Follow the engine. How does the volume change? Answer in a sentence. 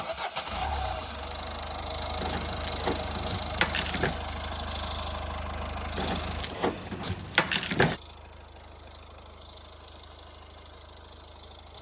The volume of the engine goes down.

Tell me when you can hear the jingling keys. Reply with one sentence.
The jingling keys can be heard from 2.2 to 4.2 s and from 6.0 to 8.0 s.